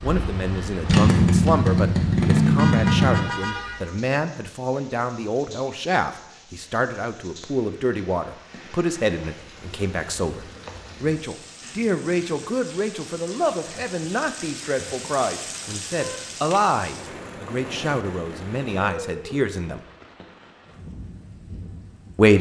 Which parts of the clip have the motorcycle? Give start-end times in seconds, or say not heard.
0.0-3.2.